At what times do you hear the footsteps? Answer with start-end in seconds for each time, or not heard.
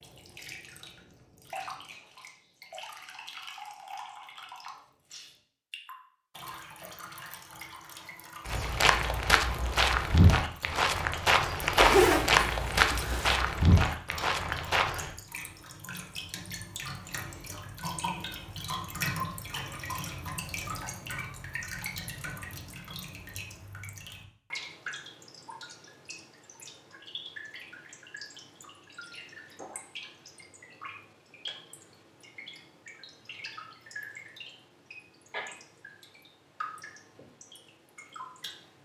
8.4-15.1.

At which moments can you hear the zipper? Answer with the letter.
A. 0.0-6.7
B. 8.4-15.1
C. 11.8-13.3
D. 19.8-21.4
C.